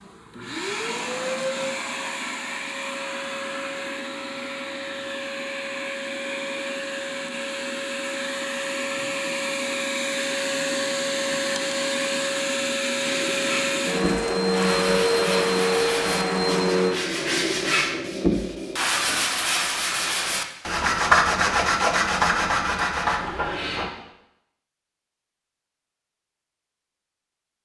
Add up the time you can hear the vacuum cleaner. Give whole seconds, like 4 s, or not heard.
17 s.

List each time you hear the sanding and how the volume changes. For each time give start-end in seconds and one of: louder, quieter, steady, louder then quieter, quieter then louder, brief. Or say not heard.
13.0-23.9 louder.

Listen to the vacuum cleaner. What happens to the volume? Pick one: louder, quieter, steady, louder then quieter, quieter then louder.
louder.